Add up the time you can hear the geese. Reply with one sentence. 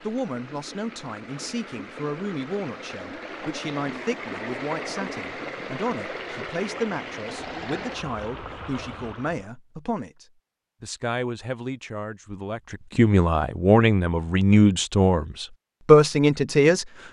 The geese can't be heard in this clip.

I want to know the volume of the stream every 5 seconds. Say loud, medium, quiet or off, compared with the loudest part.
loud, loud, off, off.